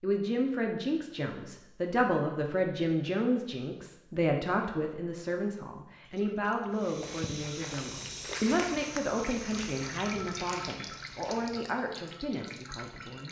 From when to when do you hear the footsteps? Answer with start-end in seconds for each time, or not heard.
6.7-11.6.